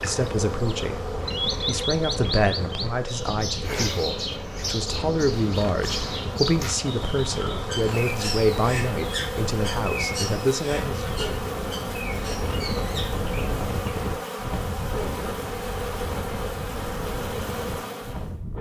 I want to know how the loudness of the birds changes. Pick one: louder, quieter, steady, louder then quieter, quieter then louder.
quieter.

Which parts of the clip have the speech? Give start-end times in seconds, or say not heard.
0.0-11.2.